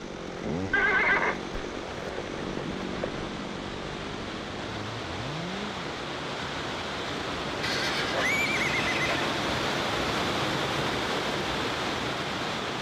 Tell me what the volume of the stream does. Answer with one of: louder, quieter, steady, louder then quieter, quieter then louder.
louder.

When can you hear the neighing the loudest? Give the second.
1 s.